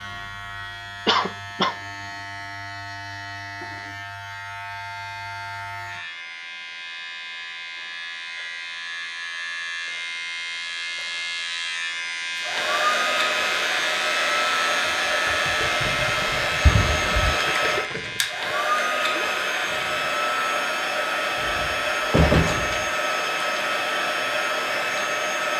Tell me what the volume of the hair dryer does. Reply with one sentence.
The volume of the hair dryer stays about the same.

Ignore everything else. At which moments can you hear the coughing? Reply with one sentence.
You can hear the coughing from 1.1 to 1.8 s and from 16.6 to 17.4 s.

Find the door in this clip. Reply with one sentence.
The door can be heard from 21.4 to 22.9 s.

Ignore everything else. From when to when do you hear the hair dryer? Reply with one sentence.
You can hear the hair dryer from 12.3 to 25.5 s.